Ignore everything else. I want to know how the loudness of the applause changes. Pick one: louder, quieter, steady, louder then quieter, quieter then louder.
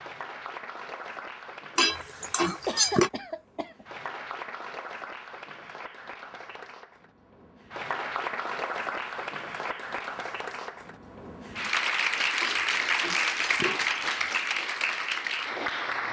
louder.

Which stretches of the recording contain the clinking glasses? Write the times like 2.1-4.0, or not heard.
1.8-3.1, 12.4-14.3.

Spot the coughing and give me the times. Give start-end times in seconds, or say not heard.
2.6-3.9.